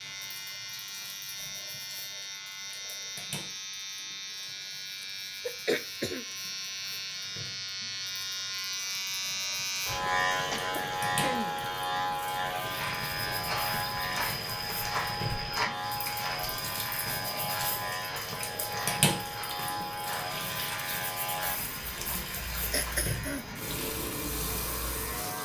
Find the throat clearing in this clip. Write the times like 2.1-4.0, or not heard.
5.0-6.2, 10.5-11.6, 22.6-23.6.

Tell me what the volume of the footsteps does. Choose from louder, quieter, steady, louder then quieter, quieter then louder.
quieter.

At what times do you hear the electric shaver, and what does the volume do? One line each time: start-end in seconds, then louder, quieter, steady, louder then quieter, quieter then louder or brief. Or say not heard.
0.0-25.3 louder then quieter.